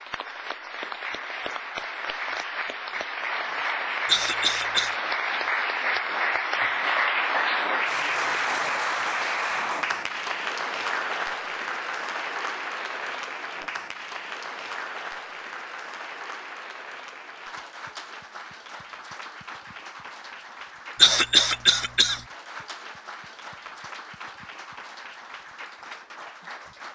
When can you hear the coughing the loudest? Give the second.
21 s.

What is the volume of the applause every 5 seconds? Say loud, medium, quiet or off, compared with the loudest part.
medium, loud, medium, quiet, quiet, quiet.